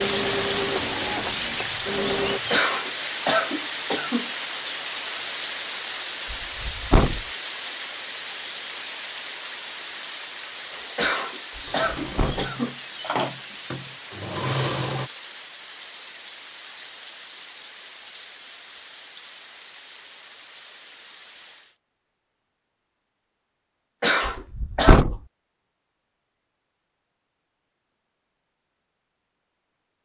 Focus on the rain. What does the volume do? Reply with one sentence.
The volume of the rain goes down.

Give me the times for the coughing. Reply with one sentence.
The coughing can be heard from 2.5 to 4.3 s, from 10.9 to 12.8 s and from 24.0 to 25.0 s.